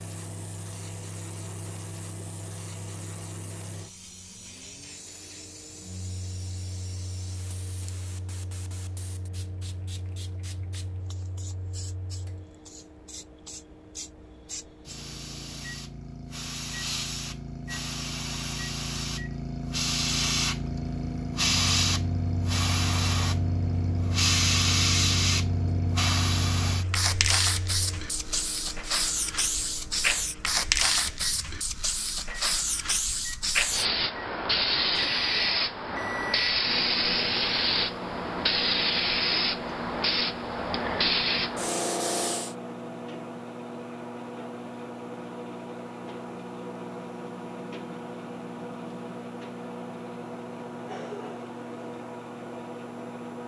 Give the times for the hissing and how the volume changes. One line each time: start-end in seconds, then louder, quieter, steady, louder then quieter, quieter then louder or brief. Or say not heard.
0.0-42.5 louder.